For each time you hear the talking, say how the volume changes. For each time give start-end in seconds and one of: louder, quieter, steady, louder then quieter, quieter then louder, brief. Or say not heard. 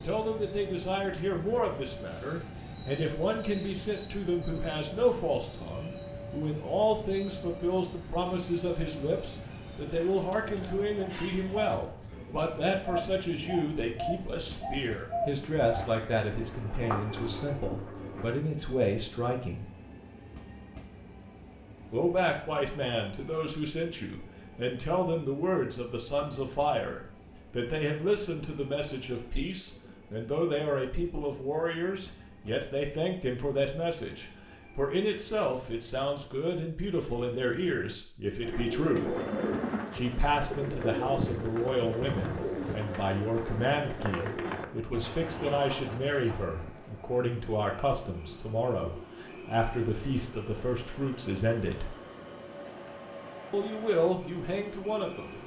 0.0-19.7 steady
21.9-39.1 steady
39.9-52.0 steady
53.5-55.4 brief.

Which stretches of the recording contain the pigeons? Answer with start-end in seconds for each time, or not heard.
10.3-18.4, 38.4-46.5.